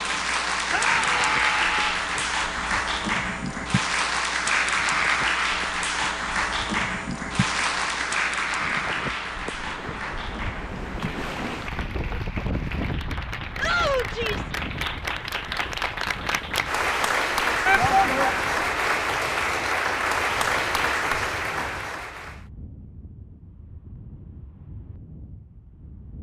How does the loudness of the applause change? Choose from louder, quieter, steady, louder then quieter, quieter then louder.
quieter then louder.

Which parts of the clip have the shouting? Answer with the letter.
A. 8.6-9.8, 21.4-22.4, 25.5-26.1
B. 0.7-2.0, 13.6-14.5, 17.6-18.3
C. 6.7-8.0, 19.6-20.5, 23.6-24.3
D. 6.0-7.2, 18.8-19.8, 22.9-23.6
B.